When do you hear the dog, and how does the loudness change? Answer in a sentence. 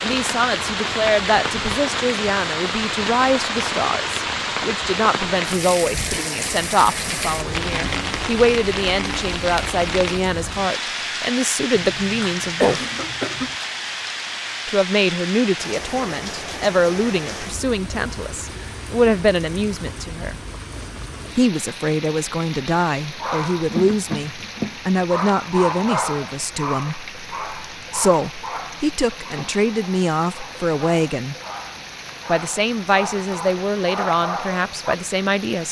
The dog can be heard from 23.1 to 35.0 s, getting quieter then louder.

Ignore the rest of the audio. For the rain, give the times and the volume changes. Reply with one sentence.
You can hear the rain from 0.0 to 35.6 s, getting quieter.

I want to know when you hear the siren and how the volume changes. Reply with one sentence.
You can't hear the siren here.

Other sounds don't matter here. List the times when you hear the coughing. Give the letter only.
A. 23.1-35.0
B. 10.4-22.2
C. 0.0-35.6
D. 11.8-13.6
D.